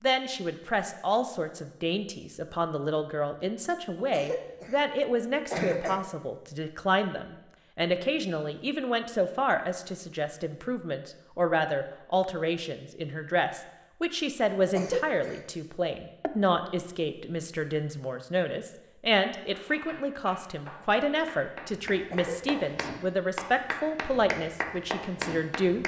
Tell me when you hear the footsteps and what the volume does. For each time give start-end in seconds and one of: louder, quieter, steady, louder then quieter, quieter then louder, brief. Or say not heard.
not heard.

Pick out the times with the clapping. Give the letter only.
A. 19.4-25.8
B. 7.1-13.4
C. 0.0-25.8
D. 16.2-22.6
A.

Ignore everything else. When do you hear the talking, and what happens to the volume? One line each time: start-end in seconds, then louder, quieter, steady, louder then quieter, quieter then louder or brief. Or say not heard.
0.0-25.8 steady.